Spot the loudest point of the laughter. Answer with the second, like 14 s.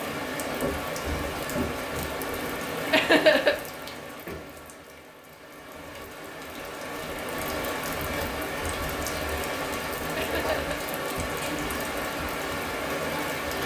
3 s.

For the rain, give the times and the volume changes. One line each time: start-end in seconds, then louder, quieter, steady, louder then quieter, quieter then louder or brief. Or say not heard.
0.0-13.6 quieter then louder.